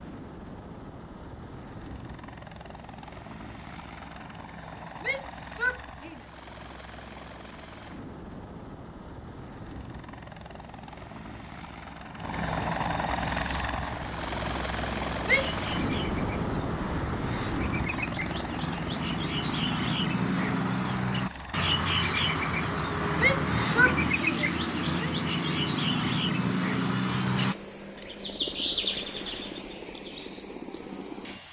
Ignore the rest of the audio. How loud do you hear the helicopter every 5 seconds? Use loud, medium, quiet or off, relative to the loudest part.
medium, medium, loud, loud, medium, medium, medium.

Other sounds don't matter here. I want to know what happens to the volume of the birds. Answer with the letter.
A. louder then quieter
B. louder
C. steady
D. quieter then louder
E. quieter
B.